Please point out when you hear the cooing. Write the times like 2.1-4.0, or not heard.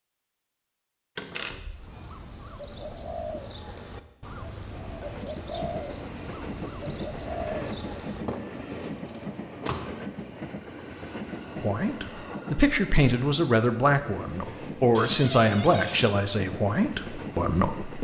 1.7-8.2.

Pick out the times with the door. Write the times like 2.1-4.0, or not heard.
1.1-1.9, 8.2-9.9, 14.9-16.1.